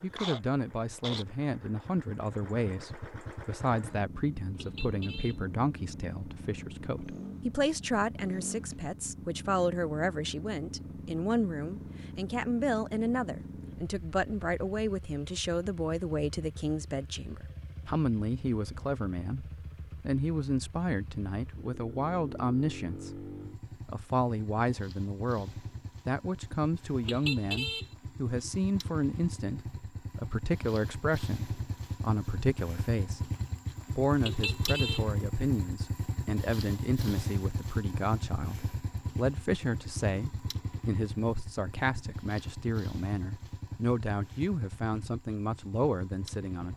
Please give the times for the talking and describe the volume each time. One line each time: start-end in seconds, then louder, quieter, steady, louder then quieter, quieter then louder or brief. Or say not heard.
0.0-23.2 steady
23.9-33.3 steady
34.0-46.7 steady.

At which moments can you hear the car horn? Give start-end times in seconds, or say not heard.
4.5-5.5, 27.0-27.9, 34.2-35.0.